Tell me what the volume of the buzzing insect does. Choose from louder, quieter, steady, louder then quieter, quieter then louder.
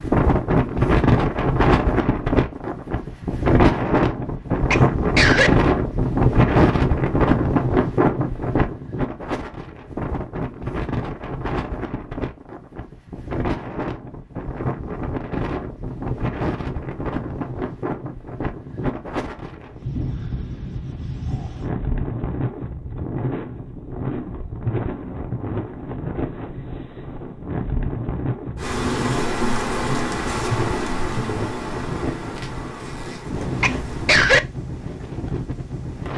quieter.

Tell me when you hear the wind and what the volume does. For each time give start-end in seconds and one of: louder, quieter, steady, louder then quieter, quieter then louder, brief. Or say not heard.
0.0-36.1 quieter.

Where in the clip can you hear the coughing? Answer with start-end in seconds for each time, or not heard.
4.7-5.5, 33.6-34.4.